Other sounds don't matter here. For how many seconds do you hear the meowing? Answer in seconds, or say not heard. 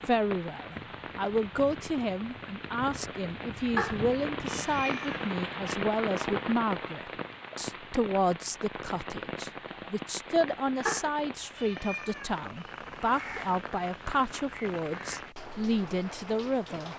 4 s.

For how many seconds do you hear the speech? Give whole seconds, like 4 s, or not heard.
17 s.